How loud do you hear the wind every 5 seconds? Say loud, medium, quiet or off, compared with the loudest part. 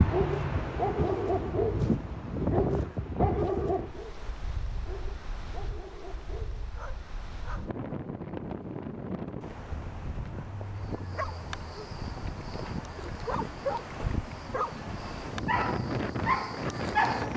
loud, medium, medium, loud.